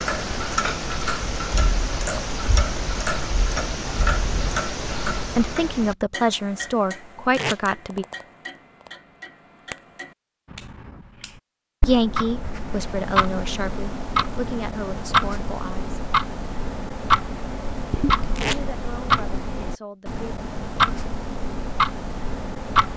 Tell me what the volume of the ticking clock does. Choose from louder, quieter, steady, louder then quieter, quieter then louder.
quieter then louder.